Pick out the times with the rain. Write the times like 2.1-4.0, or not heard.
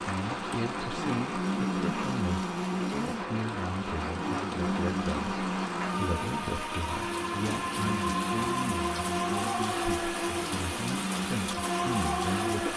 0.0-12.7.